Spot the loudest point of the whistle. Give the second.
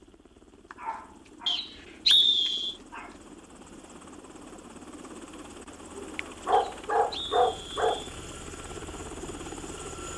2 s.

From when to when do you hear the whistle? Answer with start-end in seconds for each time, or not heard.
1.4-2.8, 6.5-8.2.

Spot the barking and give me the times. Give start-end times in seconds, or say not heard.
0.7-3.1, 6.0-8.1.